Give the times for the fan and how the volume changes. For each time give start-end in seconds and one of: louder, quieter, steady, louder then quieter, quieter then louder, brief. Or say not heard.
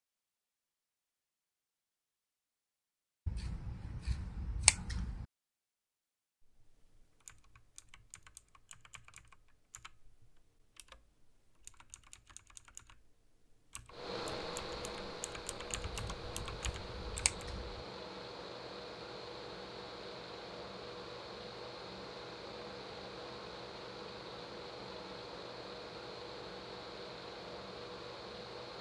13.9-28.7 steady.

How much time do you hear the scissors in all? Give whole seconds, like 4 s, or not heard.
4 s.